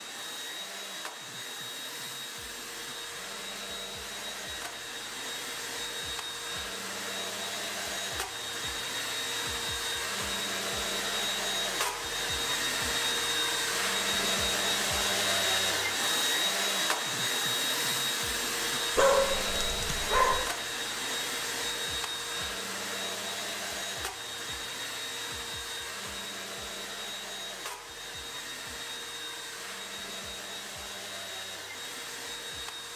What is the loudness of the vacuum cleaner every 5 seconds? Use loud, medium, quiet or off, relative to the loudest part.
medium, medium, loud, loud, medium, medium, medium.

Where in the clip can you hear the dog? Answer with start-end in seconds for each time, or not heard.
18.9-20.5.